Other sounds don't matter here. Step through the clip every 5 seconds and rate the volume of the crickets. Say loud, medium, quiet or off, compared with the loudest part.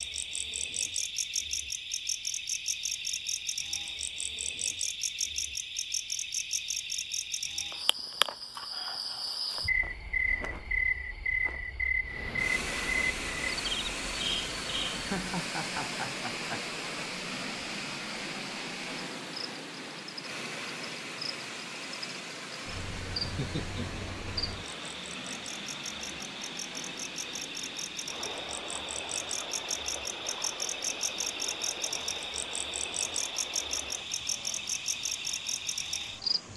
loud, loud, loud, medium, medium, medium, loud, loud.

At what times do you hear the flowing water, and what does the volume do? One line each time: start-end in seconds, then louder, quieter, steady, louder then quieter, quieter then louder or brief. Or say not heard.
12.0-36.5 quieter.